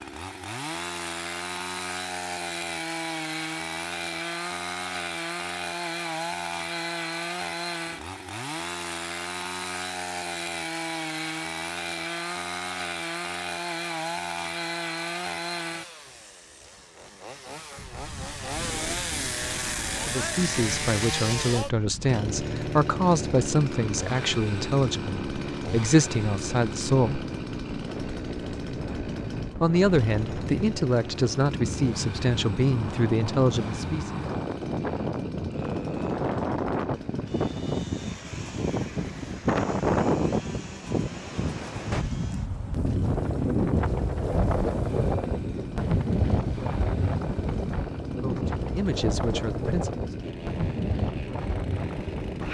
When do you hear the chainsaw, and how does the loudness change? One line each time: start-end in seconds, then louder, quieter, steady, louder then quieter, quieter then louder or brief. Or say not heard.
0.0-52.4 quieter.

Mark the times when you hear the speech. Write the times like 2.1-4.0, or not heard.
20.0-27.2, 29.6-34.1, 48.1-50.0.